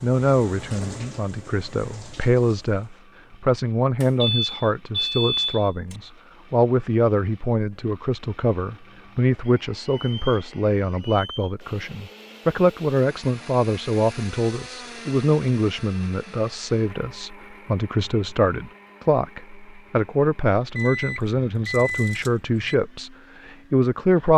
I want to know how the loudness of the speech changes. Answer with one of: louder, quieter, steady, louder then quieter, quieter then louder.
steady.